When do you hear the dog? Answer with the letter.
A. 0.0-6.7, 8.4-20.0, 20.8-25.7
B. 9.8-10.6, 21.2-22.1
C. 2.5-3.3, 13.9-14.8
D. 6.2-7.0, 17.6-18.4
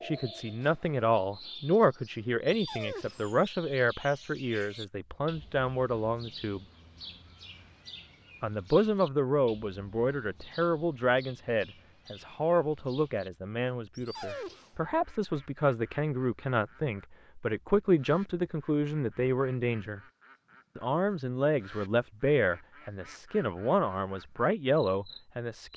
C.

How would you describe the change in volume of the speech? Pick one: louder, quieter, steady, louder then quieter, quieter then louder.
steady.